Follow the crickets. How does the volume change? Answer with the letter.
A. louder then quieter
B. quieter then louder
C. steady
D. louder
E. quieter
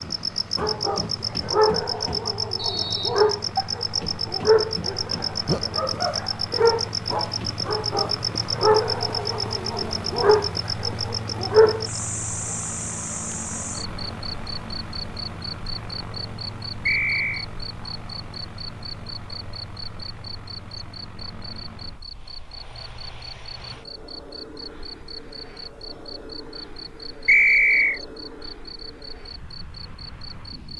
E.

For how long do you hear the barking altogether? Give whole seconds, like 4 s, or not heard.
11 s.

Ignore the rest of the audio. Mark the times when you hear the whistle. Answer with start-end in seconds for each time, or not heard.
2.5-3.4, 16.9-17.4, 27.2-28.0.